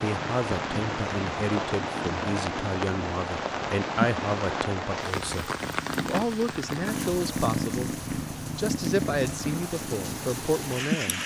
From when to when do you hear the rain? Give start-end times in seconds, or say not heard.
0.0-11.2.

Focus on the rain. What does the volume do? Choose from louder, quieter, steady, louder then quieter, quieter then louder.
quieter.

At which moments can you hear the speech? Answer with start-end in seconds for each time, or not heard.
0.0-8.0, 8.6-11.2.